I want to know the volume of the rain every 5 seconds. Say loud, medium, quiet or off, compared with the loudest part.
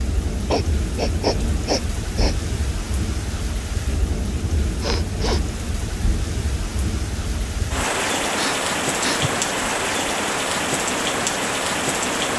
medium, loud, loud.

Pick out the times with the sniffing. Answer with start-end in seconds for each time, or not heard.
0.5-2.4, 4.8-5.4, 8.3-9.3.